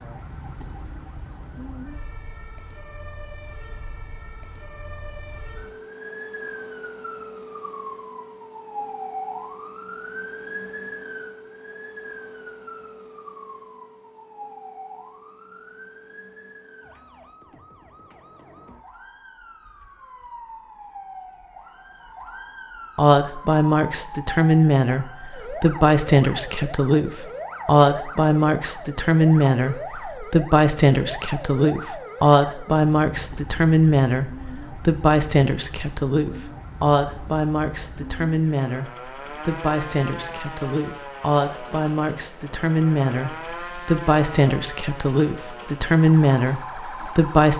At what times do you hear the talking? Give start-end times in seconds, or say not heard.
22.9-47.5.